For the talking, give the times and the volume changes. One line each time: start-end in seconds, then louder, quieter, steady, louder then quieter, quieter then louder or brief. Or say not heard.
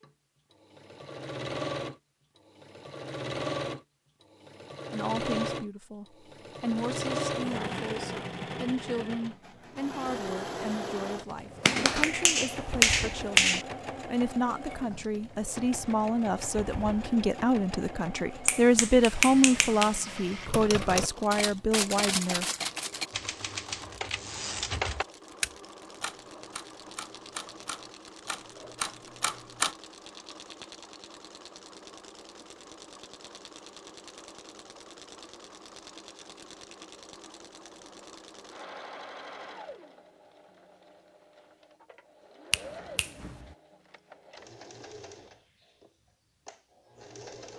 4.9-22.4 louder.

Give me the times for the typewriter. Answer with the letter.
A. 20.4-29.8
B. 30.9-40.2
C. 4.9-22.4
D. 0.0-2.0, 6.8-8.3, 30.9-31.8
A.